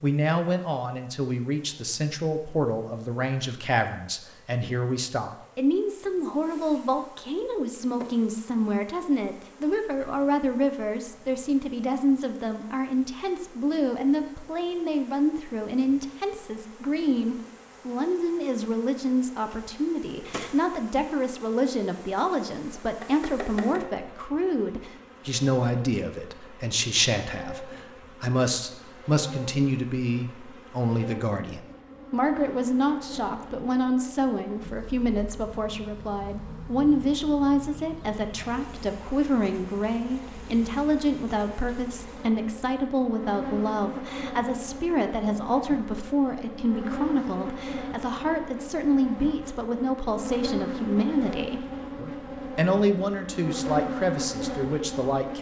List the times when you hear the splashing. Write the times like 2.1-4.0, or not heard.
not heard.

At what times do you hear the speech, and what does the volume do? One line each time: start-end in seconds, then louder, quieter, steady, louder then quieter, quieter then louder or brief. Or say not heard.
0.0-55.3 steady.